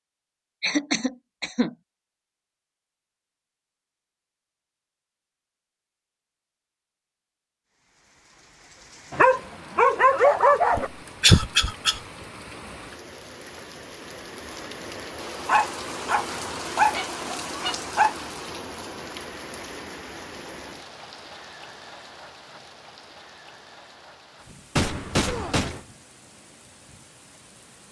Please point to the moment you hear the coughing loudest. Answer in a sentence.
The loudest moment of the coughing is at 11 seconds.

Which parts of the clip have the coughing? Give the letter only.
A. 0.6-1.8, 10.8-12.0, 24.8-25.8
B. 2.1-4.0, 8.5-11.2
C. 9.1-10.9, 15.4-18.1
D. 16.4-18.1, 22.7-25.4
A.